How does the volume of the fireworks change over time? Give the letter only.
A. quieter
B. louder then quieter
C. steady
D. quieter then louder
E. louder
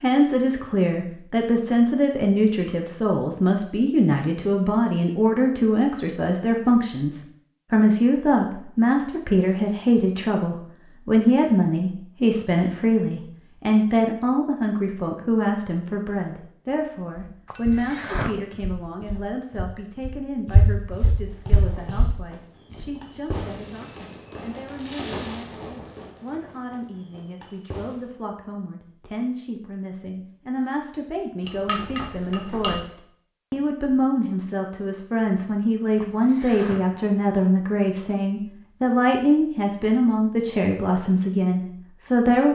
B.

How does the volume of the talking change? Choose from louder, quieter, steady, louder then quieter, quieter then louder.
quieter then louder.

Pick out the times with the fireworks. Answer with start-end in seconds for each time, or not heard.
21.2-28.1.